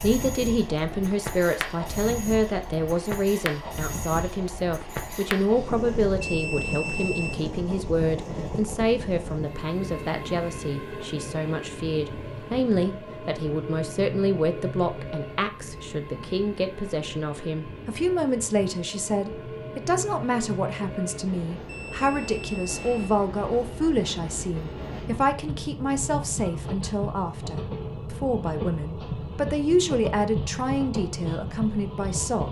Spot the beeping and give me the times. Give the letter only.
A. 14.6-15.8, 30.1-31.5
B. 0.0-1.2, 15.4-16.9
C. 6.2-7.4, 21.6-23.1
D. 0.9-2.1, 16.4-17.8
C.